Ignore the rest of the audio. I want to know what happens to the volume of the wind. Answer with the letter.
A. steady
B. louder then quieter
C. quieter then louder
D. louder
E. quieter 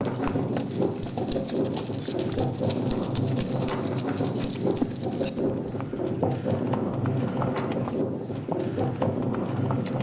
A.